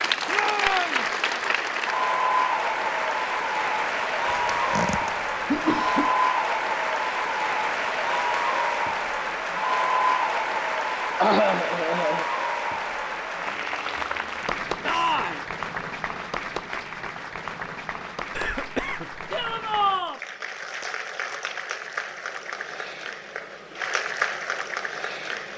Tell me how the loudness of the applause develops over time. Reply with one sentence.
The volume of the applause goes down.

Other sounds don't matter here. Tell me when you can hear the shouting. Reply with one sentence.
You can hear the shouting from 0.2 to 1.1 s, from 14.8 to 15.4 s and from 19.3 to 20.2 s.